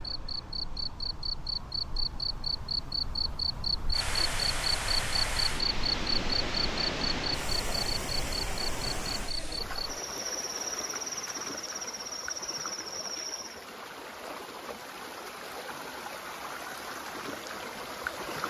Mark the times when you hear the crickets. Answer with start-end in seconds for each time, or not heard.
0.0-13.7.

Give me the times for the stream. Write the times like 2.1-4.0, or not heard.
3.9-18.4.